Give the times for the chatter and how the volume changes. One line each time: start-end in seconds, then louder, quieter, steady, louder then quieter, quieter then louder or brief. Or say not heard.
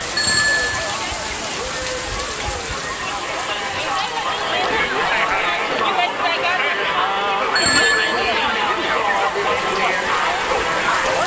0.0-11.2 louder.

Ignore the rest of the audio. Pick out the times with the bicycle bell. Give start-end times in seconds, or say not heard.
0.1-0.9, 7.5-8.3.